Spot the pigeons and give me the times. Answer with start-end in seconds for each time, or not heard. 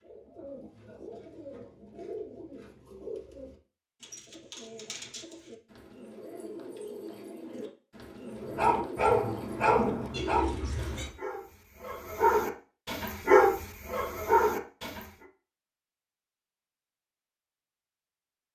0.0-11.1.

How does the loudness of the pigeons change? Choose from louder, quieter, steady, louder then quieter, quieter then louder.
louder.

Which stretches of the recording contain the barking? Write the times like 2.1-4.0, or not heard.
8.4-15.1.